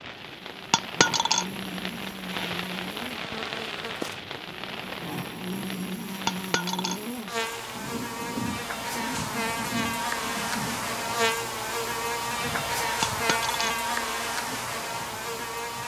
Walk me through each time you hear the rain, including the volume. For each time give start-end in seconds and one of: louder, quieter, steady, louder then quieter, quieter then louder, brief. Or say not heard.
0.0-15.8 quieter.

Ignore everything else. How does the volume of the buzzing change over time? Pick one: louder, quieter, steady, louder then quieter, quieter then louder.
louder.